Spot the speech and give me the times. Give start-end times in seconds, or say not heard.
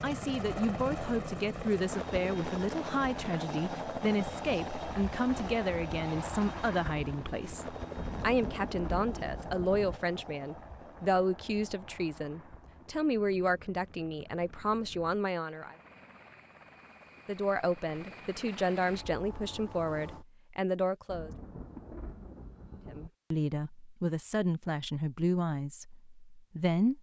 0.0-15.8, 17.2-21.3, 22.9-26.9.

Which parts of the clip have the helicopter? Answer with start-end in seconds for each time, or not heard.
0.0-20.2.